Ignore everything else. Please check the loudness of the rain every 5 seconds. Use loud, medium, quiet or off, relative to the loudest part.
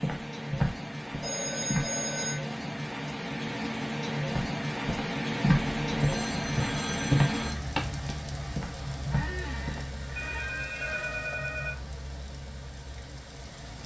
loud, loud, medium.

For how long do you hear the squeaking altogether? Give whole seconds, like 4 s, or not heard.
2 s.